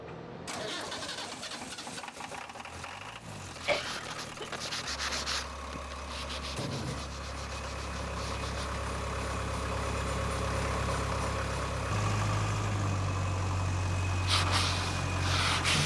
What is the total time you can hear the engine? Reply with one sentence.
The engine can be heard for 16 seconds in total.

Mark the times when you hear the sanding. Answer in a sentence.
You can hear the sanding from 3.5 to 8.8 s and from 14.2 to 15.8 s.